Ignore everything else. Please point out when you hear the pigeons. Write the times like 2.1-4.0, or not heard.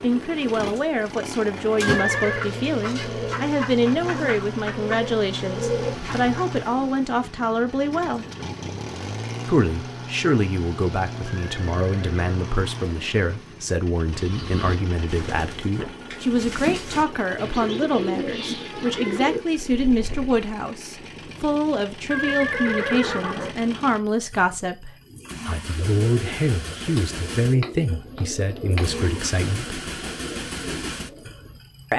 0.6-6.7, 14.2-20.4, 25.1-31.6.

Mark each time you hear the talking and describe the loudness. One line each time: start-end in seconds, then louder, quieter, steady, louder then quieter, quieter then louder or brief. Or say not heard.
0.0-8.2 steady
9.4-29.8 steady.